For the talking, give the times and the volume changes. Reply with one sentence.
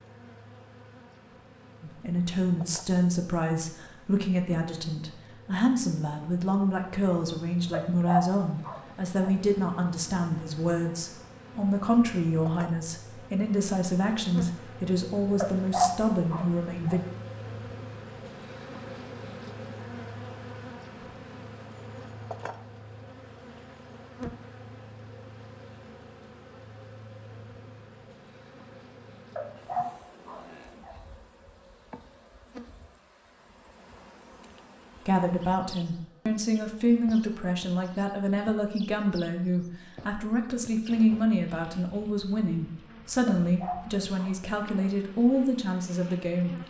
The talking can be heard from 1.8 to 17.0 s, at a steady volume; and from 35.0 to 46.5 s, at a steady volume.